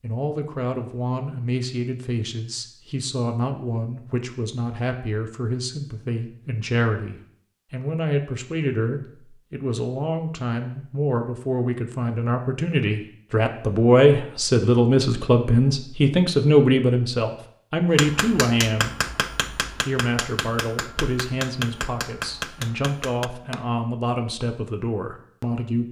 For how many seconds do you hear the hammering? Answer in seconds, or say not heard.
6 s.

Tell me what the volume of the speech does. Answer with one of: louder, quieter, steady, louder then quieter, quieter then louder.
louder then quieter.